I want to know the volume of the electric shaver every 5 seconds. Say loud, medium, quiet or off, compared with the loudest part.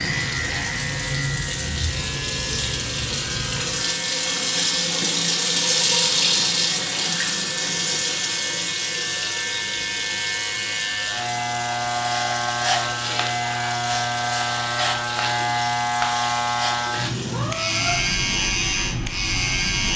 medium, medium, loud, loud.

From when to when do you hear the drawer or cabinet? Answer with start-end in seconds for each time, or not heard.
not heard.